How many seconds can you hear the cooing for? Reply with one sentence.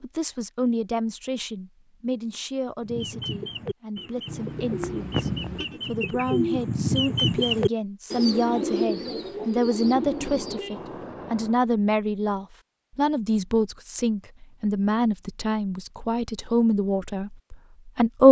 You can hear the cooing for 8 seconds altogether.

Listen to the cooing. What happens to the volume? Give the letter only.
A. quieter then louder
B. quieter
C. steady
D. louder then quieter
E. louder
D.